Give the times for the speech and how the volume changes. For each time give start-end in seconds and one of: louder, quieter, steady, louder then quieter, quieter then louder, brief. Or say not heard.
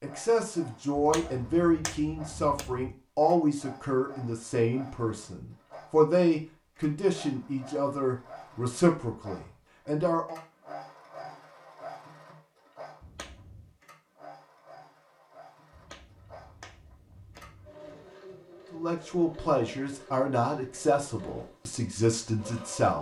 0.0-10.4 steady
18.7-22.9 quieter then louder.